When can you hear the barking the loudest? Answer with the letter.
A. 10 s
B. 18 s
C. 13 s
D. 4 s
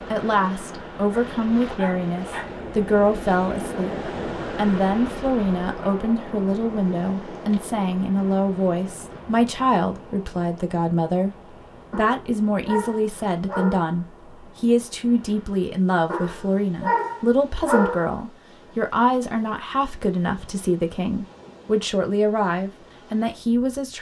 B.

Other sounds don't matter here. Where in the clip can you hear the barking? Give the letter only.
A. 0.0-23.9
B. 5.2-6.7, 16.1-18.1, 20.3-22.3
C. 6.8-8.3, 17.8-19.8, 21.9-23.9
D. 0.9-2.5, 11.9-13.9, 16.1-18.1
D.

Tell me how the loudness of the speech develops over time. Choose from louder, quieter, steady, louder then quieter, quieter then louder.
steady.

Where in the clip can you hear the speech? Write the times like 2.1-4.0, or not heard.
0.0-23.9.